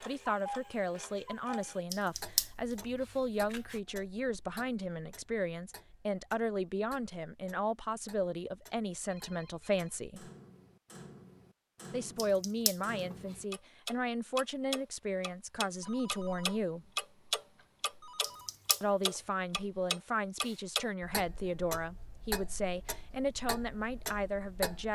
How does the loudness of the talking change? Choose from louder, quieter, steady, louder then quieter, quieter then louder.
steady.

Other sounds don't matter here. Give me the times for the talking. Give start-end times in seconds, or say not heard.
0.0-10.3, 11.9-16.9, 18.8-24.9.